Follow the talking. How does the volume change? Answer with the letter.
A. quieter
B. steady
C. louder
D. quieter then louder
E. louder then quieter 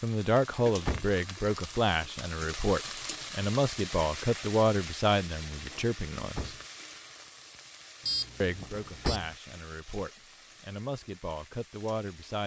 A.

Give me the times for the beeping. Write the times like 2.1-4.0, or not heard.
8.0-9.2.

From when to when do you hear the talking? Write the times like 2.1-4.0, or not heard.
0.0-6.5, 8.4-12.4.